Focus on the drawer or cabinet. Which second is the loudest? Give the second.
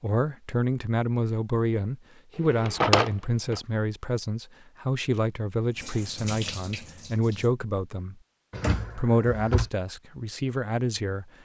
3 s.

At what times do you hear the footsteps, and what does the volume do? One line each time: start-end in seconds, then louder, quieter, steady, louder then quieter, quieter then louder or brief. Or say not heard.
not heard.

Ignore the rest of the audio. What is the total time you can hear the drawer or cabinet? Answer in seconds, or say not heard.
2 s.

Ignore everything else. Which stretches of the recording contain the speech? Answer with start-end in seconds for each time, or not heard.
0.0-8.2, 8.9-11.3.